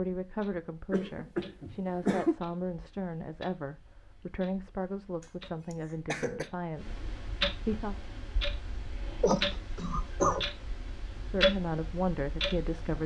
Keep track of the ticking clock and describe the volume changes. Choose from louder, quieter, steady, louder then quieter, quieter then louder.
louder.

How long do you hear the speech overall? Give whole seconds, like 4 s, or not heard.
10 s.